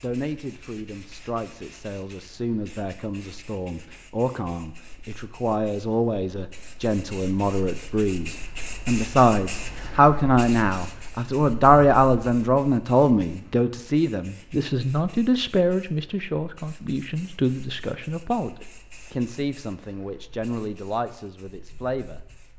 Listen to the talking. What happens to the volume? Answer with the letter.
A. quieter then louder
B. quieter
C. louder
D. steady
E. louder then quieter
E.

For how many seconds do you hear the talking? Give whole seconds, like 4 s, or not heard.
22 s.